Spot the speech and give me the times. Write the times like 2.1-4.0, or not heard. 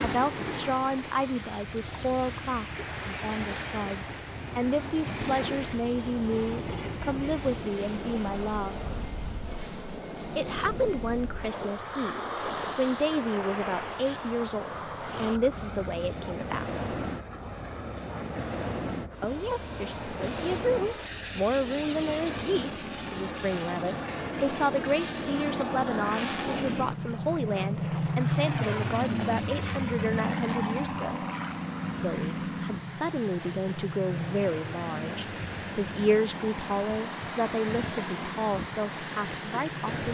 0.0-8.8, 10.3-16.7, 19.2-31.2, 32.0-40.0.